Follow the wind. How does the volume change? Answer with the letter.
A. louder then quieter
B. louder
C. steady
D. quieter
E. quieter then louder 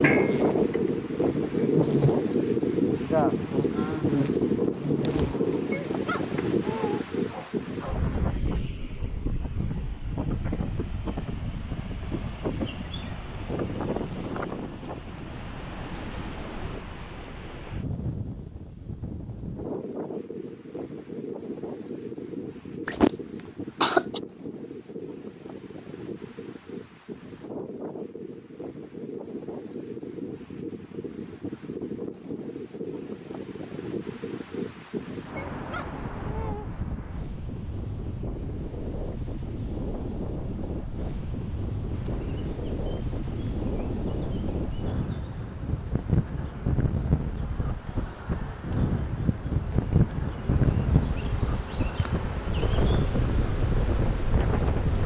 E.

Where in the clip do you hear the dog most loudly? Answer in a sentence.
The loudest moment of the dog is at 7 seconds.